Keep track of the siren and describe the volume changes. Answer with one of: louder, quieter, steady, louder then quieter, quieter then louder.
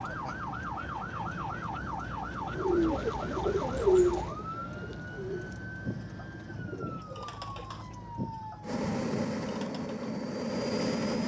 quieter.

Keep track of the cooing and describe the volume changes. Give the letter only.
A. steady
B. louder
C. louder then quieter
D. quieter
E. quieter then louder
D.